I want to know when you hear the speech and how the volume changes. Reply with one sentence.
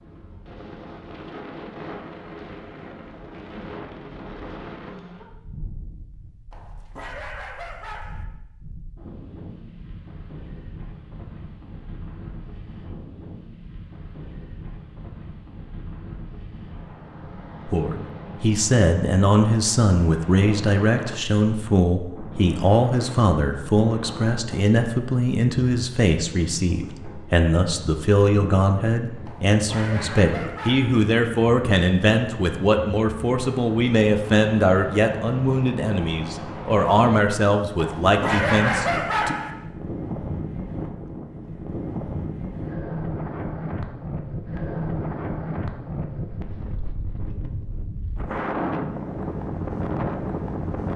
The speech can be heard from 17.6 to 39.4 s, at a steady volume.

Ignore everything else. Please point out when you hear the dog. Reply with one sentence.
You can hear the dog from 6.5 to 8.2 s, from 29.2 to 31.0 s and from 37.8 to 39.5 s.